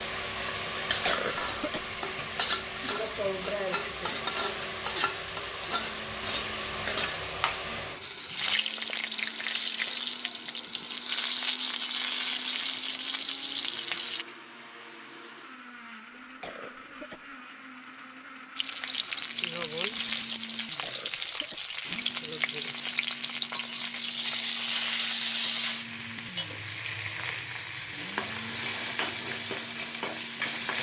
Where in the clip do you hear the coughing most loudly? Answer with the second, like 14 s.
1 s.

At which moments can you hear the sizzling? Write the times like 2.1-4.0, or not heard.
0.0-14.2, 18.6-30.7.